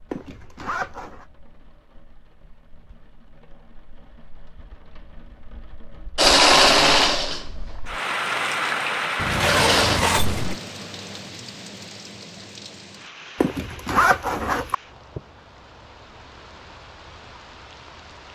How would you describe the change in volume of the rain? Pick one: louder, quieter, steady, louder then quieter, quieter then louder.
louder then quieter.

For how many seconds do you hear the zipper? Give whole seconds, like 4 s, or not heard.
4 s.